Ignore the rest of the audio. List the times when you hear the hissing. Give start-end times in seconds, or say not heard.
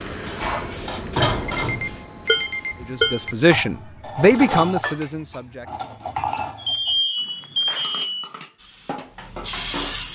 0.0-3.5, 8.6-10.0.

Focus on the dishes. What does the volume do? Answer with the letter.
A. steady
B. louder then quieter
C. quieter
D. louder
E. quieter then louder
C.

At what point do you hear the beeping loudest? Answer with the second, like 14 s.
7 s.